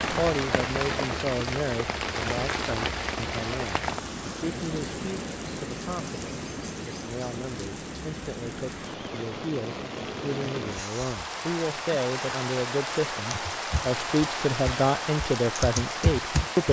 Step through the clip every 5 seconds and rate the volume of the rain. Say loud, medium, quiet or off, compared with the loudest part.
loud, medium, loud, loud.